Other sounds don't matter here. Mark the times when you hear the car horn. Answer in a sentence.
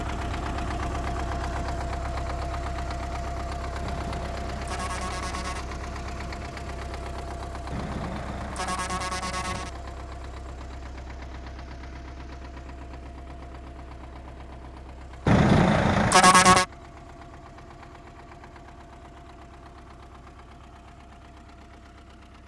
The car horn can be heard from 3.8 to 5.7 s, from 7.7 to 9.7 s and from 15.2 to 16.6 s.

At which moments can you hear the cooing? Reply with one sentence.
You can't hear the cooing here.